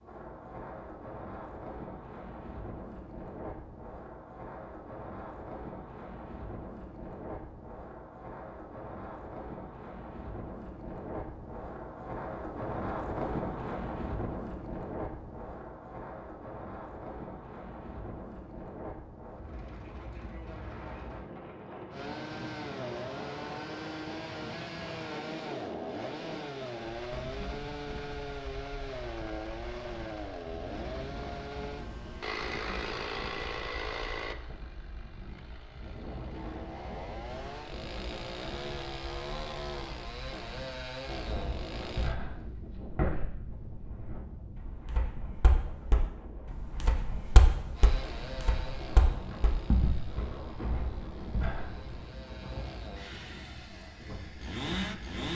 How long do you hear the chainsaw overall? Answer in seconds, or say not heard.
28 s.